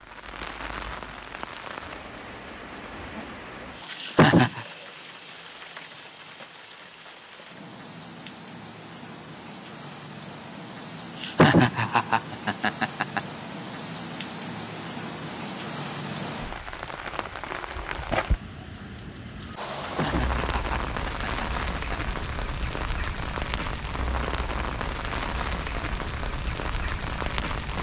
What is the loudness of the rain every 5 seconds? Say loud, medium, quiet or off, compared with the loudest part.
medium, medium, medium, loud, loud, loud.